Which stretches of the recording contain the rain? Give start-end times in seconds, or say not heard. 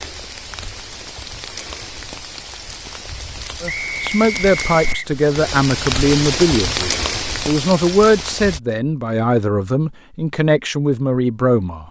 0.0-8.6.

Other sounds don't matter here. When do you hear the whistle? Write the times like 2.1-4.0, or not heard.
3.6-5.1.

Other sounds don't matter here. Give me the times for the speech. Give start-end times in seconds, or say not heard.
3.6-11.8.